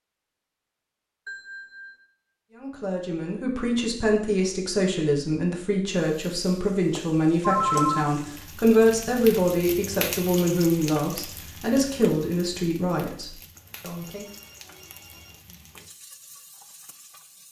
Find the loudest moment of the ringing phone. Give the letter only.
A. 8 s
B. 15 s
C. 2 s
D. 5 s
A.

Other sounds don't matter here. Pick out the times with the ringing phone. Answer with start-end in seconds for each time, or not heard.
1.2-2.1, 7.4-8.1, 13.6-15.4.